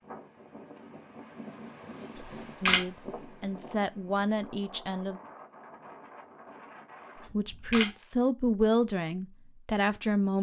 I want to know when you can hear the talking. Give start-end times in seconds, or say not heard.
2.6-5.2, 7.3-10.3.